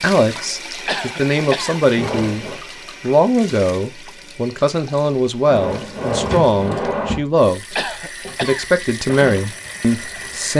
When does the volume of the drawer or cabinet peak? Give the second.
6 s.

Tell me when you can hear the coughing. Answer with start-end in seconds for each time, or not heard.
0.8-1.8, 7.8-8.7.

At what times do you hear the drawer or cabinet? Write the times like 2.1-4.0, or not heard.
1.9-2.6, 5.5-7.2.